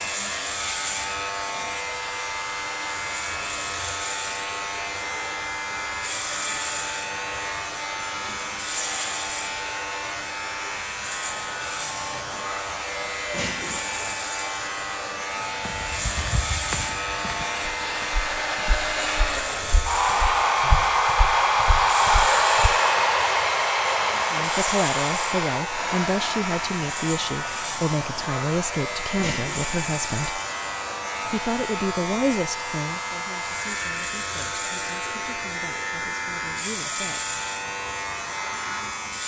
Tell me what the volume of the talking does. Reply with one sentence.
The volume of the talking goes down.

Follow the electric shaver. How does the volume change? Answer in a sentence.
The volume of the electric shaver stays about the same.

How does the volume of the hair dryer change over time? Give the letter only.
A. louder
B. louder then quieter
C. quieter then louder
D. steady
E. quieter
B.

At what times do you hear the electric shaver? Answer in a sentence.
You can hear the electric shaver from 0.0 to 39.2 s.